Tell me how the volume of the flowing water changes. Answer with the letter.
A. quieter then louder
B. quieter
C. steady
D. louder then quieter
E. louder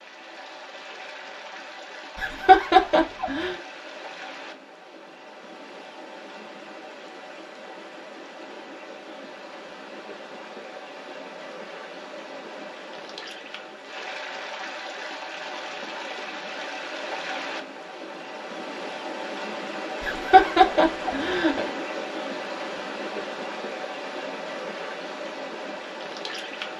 E.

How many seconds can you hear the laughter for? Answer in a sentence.
You can hear the laughter for 3 seconds altogether.